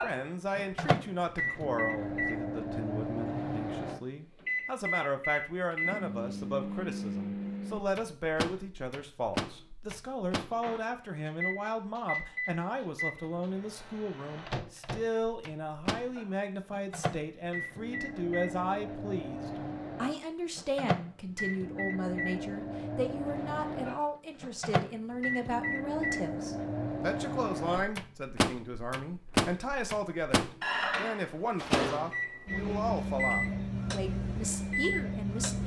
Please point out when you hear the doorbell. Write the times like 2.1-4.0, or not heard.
not heard.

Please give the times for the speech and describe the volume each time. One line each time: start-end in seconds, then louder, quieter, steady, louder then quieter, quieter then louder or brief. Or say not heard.
0.0-35.6 steady.